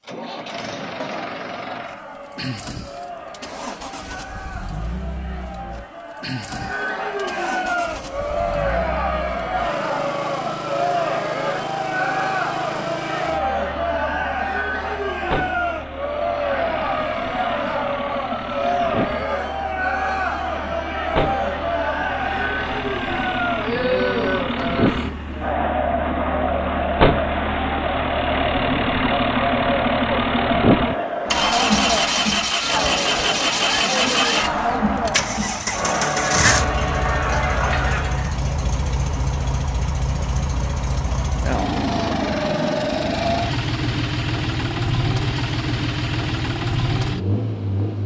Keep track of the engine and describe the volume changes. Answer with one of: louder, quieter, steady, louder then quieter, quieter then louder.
louder.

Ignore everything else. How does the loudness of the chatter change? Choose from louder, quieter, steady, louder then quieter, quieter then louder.
louder.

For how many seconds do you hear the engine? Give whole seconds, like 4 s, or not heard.
48 s.